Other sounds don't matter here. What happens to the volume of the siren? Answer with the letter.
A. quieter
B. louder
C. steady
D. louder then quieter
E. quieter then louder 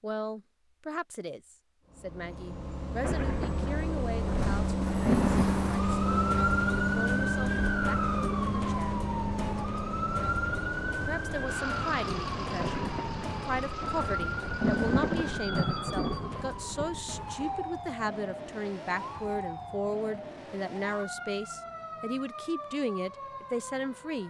A.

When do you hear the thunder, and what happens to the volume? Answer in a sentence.
You can hear the thunder briefly from 3.0 to 5.6 s; and from 12.6 to 17.1 s, getting louder then quieter.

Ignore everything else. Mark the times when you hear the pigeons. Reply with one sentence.
You can't hear the pigeons here.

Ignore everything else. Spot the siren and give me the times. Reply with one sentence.
The siren can be heard from 4.8 to 24.2 s.